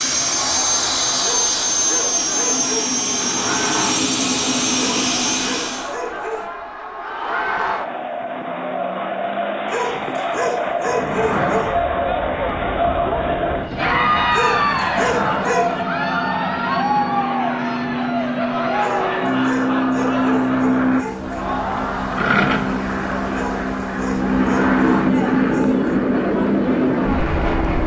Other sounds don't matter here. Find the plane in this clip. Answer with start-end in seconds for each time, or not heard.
0.0-6.0, 10.9-27.8.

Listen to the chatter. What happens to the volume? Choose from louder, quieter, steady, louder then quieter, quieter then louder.
louder then quieter.